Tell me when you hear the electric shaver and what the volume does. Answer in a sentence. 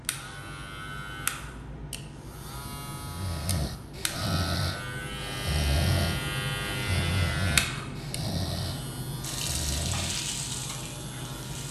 The electric shaver can be heard from 0.0 to 11.6 s, getting louder then quieter.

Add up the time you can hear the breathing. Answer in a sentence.
The breathing can be heard for 7 seconds in total.